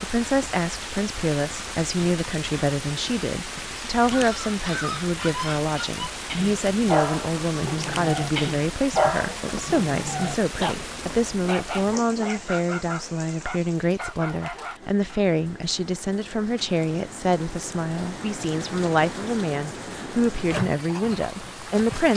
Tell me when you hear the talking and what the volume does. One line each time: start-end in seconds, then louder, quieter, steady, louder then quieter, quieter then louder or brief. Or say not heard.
0.0-22.1 steady.